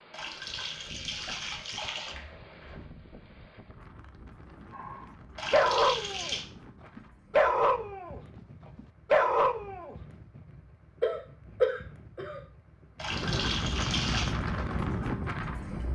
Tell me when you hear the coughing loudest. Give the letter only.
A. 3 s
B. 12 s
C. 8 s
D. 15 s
B.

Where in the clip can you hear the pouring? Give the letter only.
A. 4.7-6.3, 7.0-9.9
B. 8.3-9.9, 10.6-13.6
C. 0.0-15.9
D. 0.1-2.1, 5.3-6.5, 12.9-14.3
D.